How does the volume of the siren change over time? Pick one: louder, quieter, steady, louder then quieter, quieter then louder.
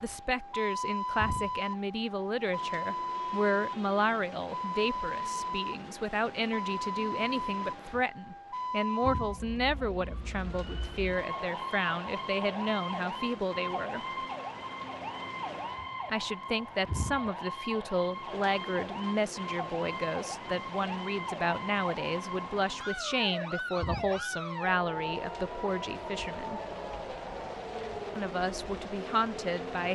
steady.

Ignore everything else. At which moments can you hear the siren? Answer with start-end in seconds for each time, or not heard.
0.0-29.8.